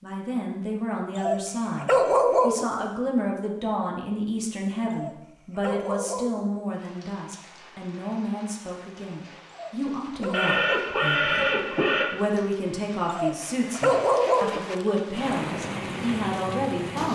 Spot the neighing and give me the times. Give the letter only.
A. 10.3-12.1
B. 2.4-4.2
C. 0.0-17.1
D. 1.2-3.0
A.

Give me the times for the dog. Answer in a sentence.
You can hear the dog from 1.1 to 2.6 s, from 4.9 to 6.4 s, from 9.5 to 10.9 s and from 13.1 to 14.6 s.